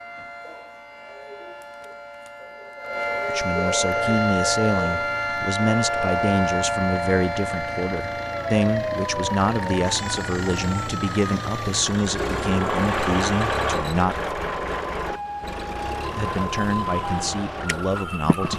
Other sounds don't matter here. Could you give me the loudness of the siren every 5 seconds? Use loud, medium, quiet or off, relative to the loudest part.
loud, loud, medium, medium.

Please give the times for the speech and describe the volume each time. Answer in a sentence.
You can hear the speech from 3.2 to 14.2 s, at a steady volume; and briefly from 16.1 to 18.5 s.